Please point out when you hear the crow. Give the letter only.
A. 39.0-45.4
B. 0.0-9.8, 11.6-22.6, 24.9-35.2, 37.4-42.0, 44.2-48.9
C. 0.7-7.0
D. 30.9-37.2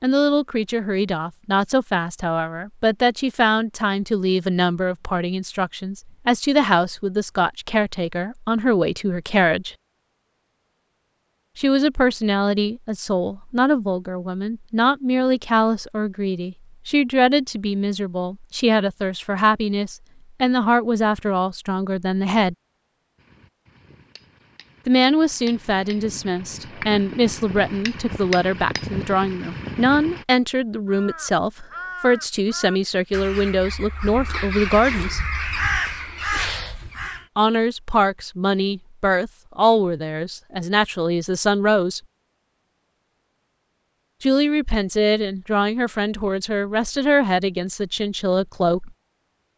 D.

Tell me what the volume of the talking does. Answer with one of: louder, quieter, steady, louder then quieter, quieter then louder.
steady.